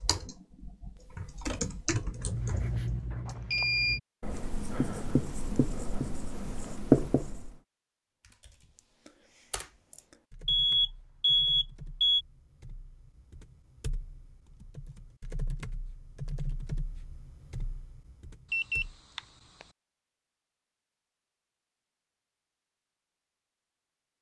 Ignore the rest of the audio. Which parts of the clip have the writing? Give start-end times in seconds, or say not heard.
2.0-7.6.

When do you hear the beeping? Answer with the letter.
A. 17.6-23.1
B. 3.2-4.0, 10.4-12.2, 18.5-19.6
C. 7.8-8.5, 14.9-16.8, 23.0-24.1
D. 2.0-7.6
B.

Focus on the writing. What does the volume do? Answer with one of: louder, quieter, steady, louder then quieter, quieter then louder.
quieter then louder.